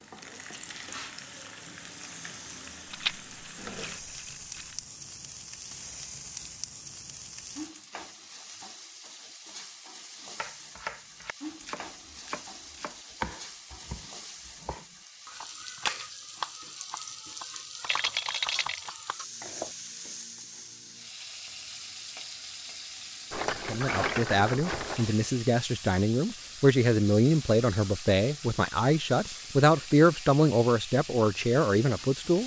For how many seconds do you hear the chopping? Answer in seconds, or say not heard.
9 s.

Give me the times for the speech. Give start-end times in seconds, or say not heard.
23.6-32.4.